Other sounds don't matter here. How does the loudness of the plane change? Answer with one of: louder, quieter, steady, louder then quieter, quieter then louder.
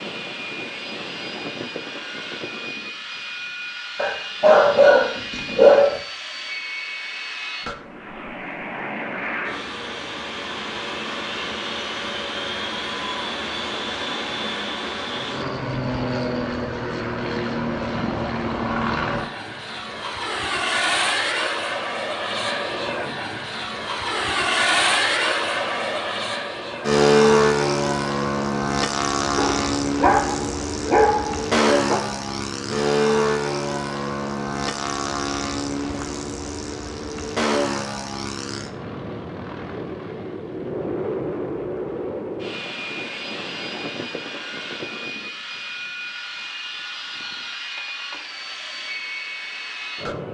louder then quieter.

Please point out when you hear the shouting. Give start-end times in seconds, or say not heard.
not heard.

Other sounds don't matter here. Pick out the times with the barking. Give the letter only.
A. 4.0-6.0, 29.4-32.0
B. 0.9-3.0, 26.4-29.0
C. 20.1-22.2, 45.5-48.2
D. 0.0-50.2
A.